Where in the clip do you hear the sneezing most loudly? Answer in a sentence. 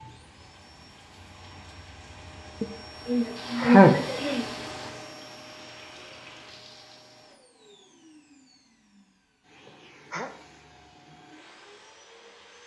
The volume of the sneezing peaks at 4 seconds.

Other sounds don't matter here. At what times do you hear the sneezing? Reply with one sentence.
The sneezing can be heard from 2.6 to 4.5 s and from 9.7 to 10.3 s.